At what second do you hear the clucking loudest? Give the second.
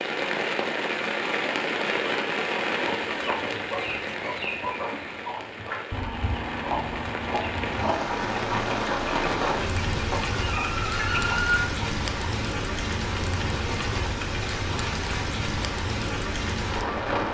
11 s.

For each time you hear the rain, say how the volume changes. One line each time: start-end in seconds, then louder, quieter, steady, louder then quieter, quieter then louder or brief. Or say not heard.
0.0-17.2 quieter then louder.